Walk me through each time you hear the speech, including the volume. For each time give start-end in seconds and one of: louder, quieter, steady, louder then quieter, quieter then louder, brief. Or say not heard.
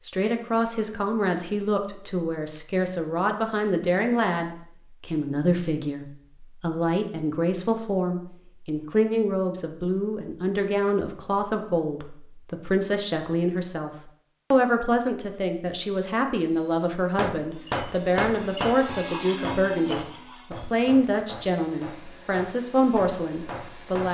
0.1-13.9 steady
14.5-24.0 steady.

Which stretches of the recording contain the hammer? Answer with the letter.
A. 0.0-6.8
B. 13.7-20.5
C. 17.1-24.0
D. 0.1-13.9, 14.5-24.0
C.